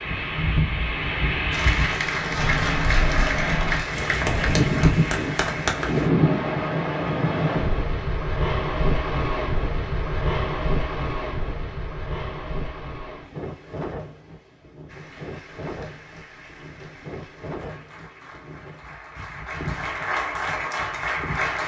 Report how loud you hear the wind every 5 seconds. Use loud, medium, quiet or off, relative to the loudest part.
loud, loud, medium, quiet, quiet.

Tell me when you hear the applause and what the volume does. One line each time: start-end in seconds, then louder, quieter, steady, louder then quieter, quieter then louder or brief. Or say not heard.
1.5-6.1 steady
14.8-21.6 louder.